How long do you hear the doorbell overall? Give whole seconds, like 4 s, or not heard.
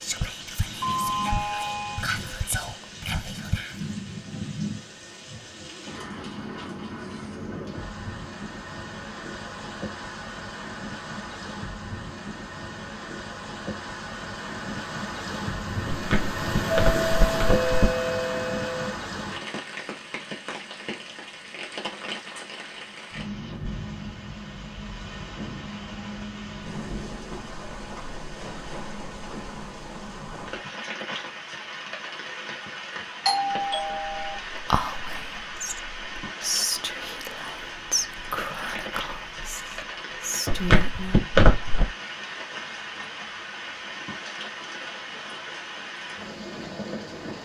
5 s.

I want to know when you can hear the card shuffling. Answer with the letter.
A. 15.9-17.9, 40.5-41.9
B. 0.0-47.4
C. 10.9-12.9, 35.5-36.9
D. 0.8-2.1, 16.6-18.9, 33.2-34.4
A.